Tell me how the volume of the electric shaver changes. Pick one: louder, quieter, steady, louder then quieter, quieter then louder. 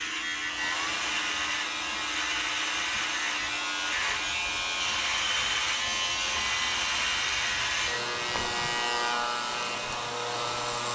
steady.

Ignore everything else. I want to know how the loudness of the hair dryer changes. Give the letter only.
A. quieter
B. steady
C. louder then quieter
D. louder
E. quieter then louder
B.